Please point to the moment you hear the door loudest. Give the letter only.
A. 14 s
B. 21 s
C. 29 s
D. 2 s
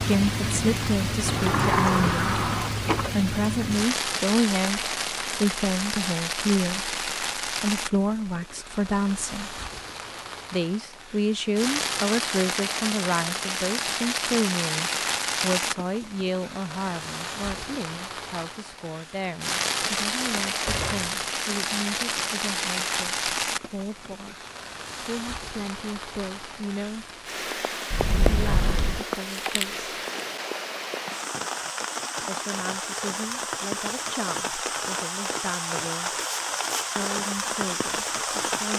D.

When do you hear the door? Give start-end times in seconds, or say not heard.
1.2-3.1, 20.4-21.1, 27.9-29.0.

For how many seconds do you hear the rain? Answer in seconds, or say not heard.
39 s.